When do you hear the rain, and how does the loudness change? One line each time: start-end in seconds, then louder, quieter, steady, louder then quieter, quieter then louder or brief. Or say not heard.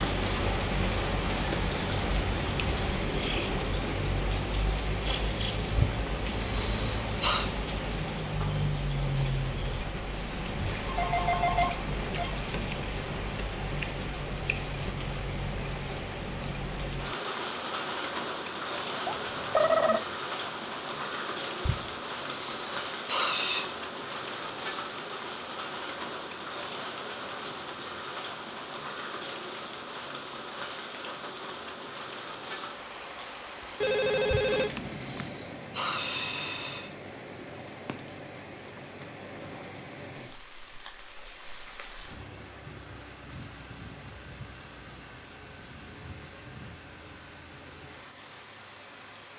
0.0-49.3 quieter.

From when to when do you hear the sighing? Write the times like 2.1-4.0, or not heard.
5.8-7.5, 21.6-23.6, 34.3-37.0.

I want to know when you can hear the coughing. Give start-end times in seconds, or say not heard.
not heard.